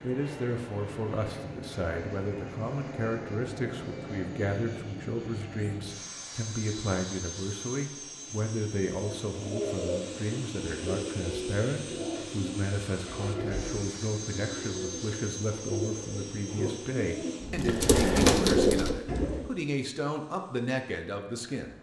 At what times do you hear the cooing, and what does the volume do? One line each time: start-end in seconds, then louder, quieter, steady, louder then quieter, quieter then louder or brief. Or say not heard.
9.0-19.5 louder.